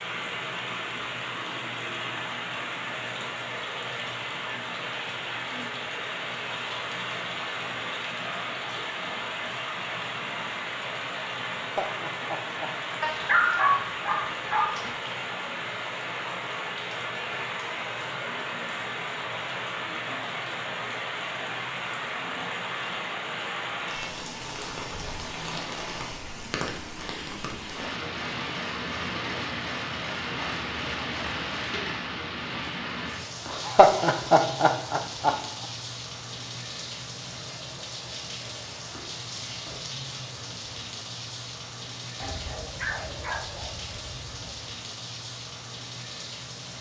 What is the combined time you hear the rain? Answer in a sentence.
You can hear the rain for 47 seconds altogether.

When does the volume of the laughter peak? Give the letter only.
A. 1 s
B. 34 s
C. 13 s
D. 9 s
B.